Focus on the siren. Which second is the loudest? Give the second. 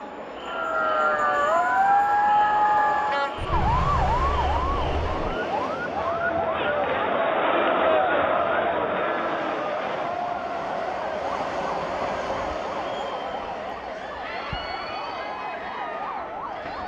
2 s.